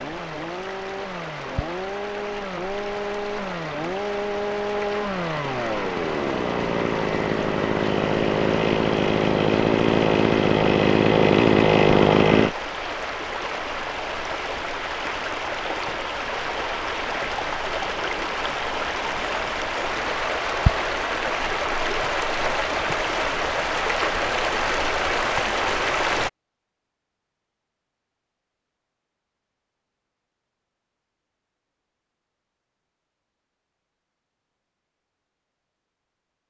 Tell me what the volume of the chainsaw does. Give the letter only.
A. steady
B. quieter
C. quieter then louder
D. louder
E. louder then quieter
D.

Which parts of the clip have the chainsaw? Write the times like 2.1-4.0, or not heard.
0.0-12.6.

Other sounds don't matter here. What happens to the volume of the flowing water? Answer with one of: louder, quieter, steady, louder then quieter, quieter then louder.
louder.